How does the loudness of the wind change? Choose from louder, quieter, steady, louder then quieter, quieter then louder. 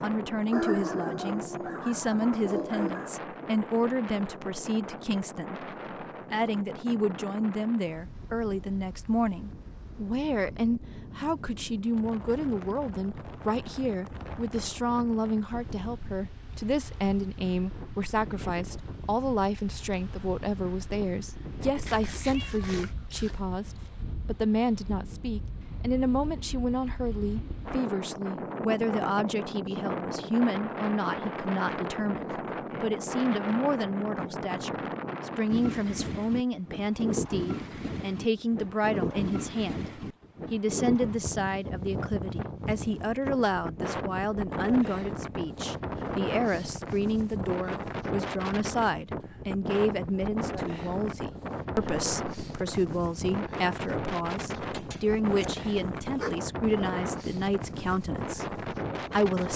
louder.